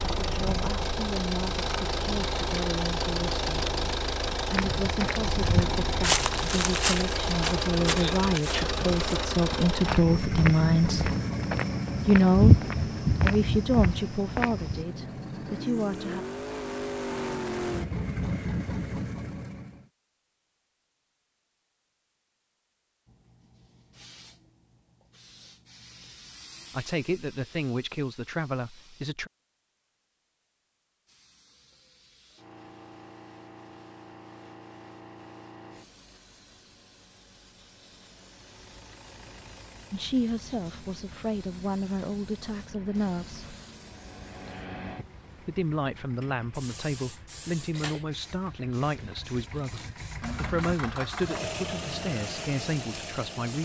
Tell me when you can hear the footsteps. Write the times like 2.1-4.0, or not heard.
4.5-14.8.